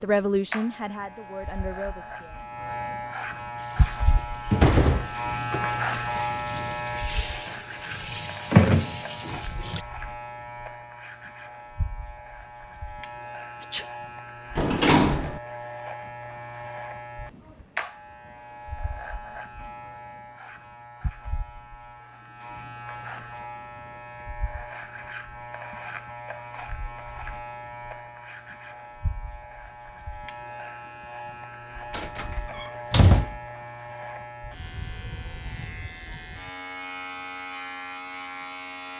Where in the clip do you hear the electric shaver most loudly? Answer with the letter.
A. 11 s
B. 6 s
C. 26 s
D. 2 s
B.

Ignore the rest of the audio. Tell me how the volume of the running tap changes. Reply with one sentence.
The loudness of the running tap goes down, then up.